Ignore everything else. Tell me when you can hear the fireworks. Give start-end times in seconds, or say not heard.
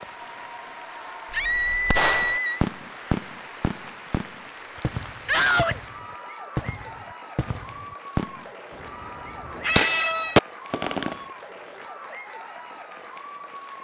1.3-11.2.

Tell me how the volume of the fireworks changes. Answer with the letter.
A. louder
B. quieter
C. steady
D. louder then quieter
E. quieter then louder
E.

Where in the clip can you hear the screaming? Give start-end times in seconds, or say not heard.
1.3-2.6, 5.2-5.8, 9.6-10.4.